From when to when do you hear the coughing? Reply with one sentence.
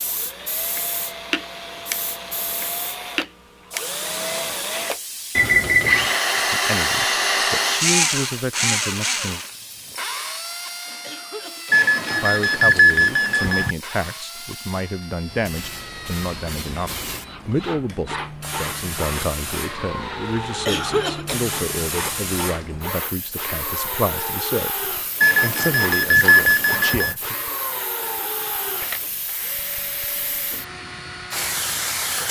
The coughing can be heard from 11.0 to 11.8 s and from 20.6 to 21.4 s.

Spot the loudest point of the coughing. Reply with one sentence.
The loudest moment of the coughing is at 21 seconds.